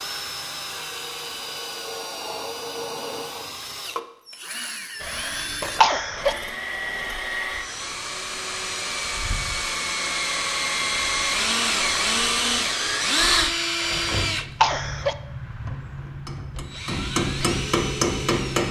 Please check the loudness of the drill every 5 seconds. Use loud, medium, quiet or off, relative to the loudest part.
medium, medium, loud, medium.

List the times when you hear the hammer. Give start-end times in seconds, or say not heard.
15.9-18.6.